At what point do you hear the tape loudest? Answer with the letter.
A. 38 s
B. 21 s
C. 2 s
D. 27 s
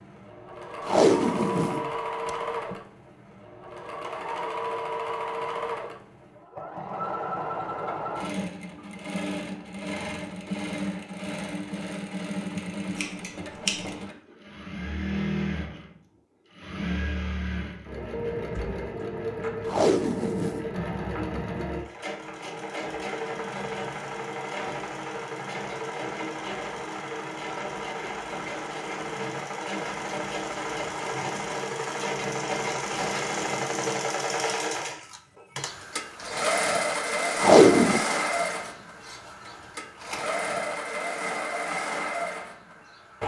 A.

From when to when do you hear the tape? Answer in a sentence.
The tape can be heard from 0.8 to 2.8 s, from 19.6 to 20.6 s and from 37.4 to 38.0 s.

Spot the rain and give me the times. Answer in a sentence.
The rain can't be heard in this clip.